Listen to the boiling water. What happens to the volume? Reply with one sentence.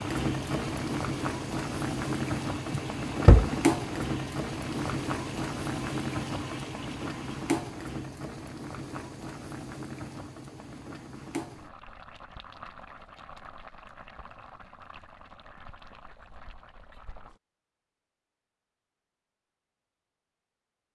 The loudness of the boiling water goes down.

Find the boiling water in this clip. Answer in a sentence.
You can hear the boiling water from 0.0 to 17.4 s.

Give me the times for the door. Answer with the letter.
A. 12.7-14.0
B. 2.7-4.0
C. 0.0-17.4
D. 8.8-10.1
B.